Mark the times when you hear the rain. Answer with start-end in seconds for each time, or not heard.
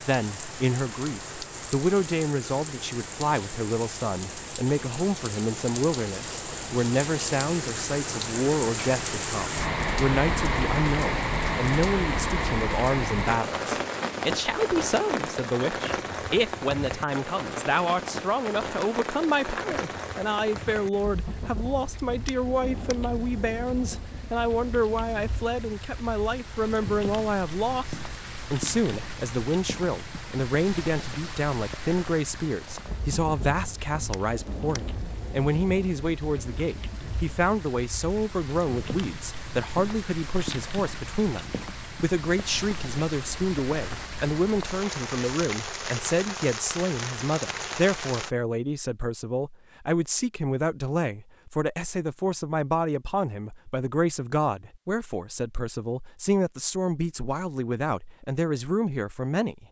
0.0-48.3.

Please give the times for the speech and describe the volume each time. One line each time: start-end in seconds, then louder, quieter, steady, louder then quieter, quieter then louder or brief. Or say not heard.
0.1-59.6 steady.